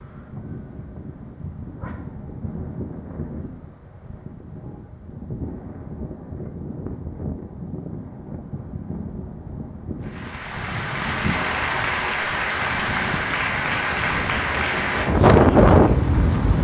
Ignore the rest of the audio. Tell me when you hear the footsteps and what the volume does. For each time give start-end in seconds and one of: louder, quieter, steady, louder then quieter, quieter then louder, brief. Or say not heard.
not heard.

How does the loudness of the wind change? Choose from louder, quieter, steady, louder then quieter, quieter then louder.
louder.